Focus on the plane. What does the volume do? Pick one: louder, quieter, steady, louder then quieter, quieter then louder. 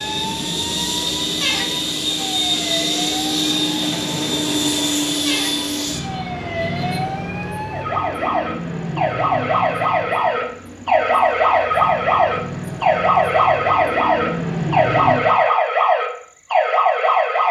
quieter then louder.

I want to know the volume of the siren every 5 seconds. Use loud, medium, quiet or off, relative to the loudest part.
quiet, medium, loud, loud.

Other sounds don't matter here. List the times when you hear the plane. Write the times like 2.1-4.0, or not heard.
0.0-15.3.